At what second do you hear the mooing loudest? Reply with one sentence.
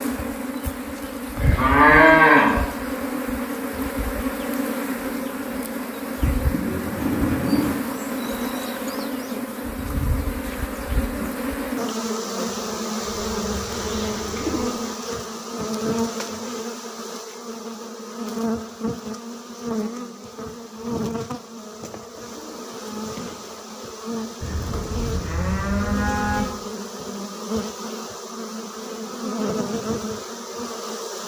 The volume of the mooing peaks at 2 seconds.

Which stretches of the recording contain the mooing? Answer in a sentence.
The mooing can be heard from 1.4 to 2.6 s and from 24.4 to 26.4 s.